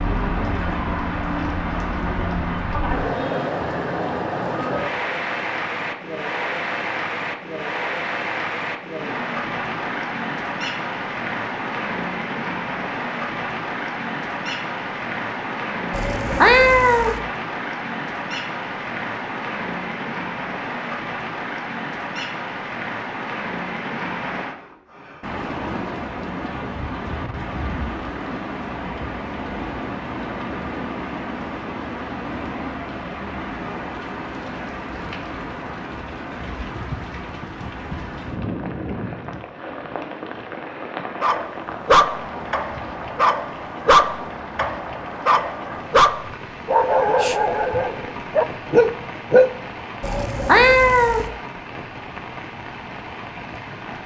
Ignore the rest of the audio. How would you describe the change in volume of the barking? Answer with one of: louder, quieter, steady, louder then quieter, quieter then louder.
steady.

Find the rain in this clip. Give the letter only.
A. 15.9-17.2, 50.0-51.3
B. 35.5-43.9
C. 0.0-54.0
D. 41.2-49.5
C.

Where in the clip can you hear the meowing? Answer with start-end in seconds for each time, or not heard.
15.9-17.2, 50.0-51.3.